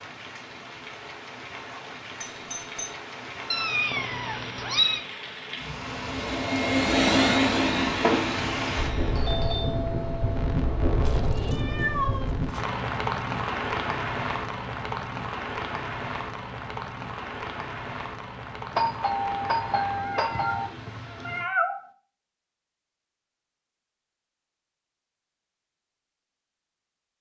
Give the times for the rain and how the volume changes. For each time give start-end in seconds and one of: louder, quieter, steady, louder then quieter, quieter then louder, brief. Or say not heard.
0.0-21.5 louder then quieter.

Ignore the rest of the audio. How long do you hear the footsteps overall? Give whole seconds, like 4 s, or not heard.
not heard.